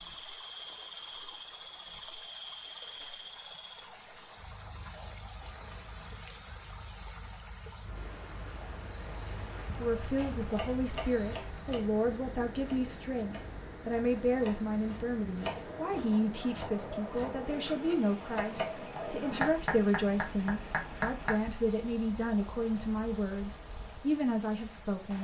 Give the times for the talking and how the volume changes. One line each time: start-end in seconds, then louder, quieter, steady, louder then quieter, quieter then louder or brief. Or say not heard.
9.8-25.1 steady.